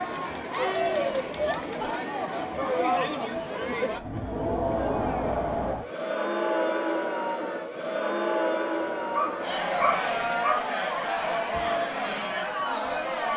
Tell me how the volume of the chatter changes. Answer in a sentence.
The loudness of the chatter stays about the same.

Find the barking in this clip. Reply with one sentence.
The barking can be heard from 8.7 to 10.6 s.